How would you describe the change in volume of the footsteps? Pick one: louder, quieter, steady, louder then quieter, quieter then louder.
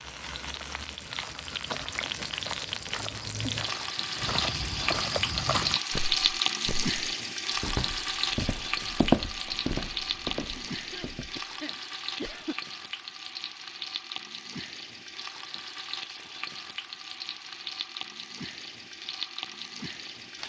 louder then quieter.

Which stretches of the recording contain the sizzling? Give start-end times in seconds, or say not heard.
0.0-20.4.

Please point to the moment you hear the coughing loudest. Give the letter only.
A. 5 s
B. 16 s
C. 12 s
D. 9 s
C.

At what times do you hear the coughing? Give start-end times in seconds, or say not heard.
10.6-12.6.